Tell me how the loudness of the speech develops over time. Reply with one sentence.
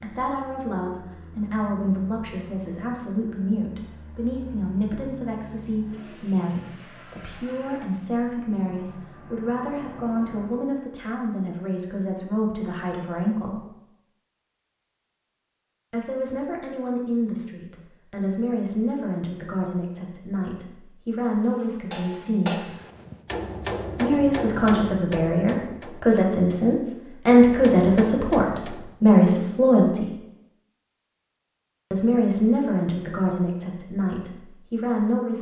The loudness of the speech goes up.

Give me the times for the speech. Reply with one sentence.
The speech can be heard from 0.0 to 13.7 s, from 15.9 to 22.6 s, from 23.9 to 30.1 s and from 31.9 to 35.3 s.